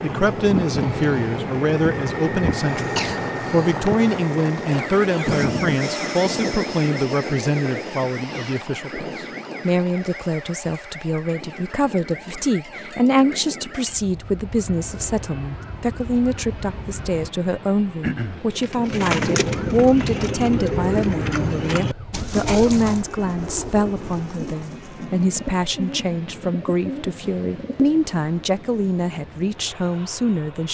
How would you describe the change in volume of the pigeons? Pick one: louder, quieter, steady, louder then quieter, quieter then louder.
quieter.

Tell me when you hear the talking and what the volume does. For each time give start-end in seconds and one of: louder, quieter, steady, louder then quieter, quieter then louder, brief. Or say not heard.
0.0-30.6 steady.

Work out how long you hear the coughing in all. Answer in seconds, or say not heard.
2 s.